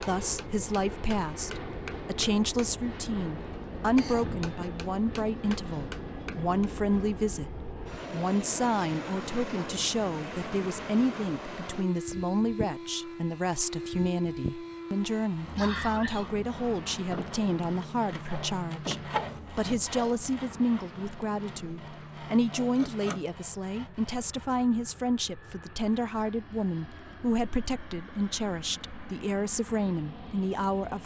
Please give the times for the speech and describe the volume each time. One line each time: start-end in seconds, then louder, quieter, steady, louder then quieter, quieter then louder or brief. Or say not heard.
0.0-31.0 steady.